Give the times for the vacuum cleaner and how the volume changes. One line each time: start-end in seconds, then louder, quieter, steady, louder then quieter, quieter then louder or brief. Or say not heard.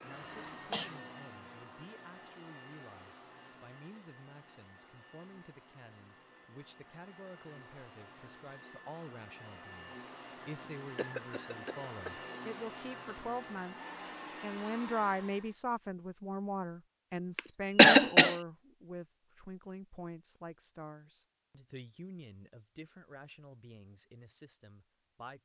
0.0-15.6 quieter then louder.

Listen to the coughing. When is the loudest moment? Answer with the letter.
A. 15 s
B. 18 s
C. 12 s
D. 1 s
B.